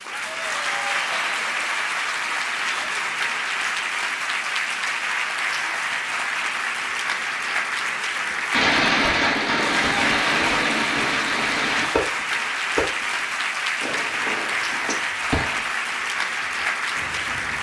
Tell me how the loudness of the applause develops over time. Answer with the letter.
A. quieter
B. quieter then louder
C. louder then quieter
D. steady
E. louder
D.